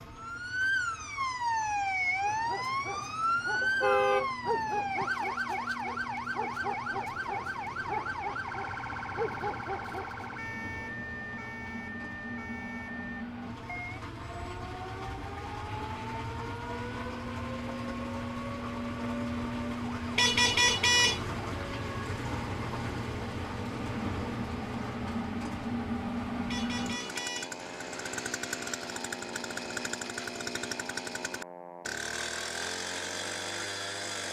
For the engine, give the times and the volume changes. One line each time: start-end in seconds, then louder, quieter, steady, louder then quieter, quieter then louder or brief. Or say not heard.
0.0-34.2 louder.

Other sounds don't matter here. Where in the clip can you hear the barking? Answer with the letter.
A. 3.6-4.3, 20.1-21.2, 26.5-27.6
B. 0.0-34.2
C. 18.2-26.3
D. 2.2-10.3
D.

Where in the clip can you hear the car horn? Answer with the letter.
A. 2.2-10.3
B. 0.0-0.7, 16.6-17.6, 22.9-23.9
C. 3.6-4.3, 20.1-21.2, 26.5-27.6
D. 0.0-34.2
C.